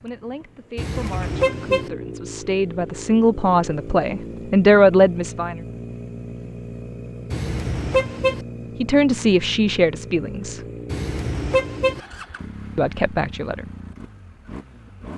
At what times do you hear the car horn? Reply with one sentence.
The car horn can be heard from 0.8 to 1.9 s, from 7.3 to 8.4 s and from 10.9 to 12.0 s.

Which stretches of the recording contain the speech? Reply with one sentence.
You can hear the speech from 0.0 to 5.5 s, from 8.8 to 10.6 s and from 12.8 to 13.7 s.